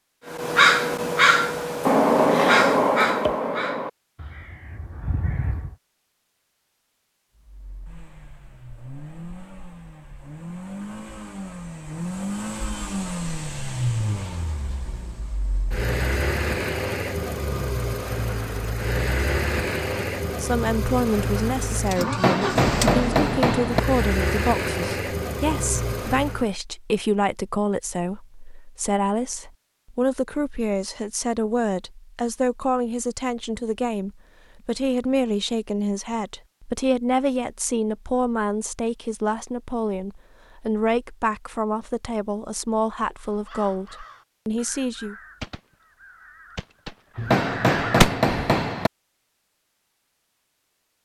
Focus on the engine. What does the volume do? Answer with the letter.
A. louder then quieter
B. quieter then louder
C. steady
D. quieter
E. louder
E.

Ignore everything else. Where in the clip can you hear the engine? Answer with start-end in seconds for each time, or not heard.
7.3-26.6.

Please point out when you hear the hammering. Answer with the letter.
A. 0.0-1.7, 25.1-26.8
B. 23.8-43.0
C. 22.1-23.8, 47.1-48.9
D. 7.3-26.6
C.